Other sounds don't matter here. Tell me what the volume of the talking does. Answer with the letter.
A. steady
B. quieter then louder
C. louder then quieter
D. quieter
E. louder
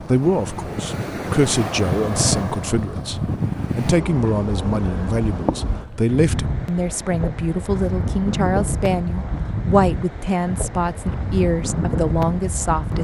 A.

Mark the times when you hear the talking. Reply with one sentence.
The talking can be heard from 0.0 to 12.9 s.